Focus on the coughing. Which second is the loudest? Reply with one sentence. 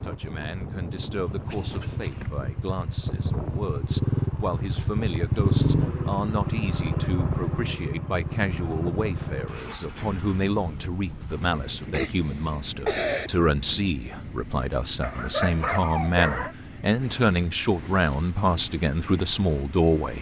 The volume of the coughing peaks at 13 seconds.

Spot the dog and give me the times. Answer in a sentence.
The dog can be heard from 15.0 to 16.6 s.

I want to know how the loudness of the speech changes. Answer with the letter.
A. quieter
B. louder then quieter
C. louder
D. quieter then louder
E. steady
C.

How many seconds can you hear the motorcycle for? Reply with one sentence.
The motorcycle can be heard for 20 seconds in total.